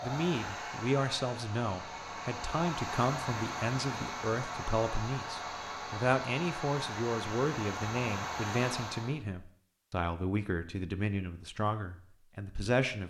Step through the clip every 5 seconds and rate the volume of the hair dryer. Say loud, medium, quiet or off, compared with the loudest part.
loud, loud, off.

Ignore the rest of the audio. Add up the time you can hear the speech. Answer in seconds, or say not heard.
13 s.